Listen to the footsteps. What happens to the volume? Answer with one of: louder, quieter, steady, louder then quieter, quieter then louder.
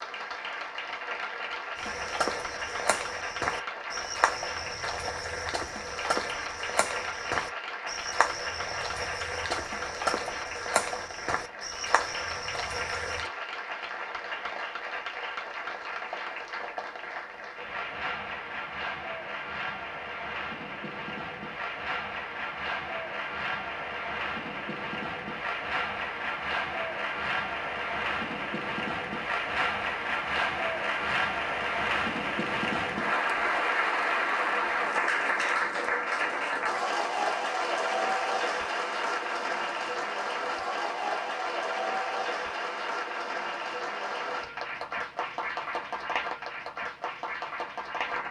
steady.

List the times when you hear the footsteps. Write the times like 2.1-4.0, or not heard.
1.8-13.3.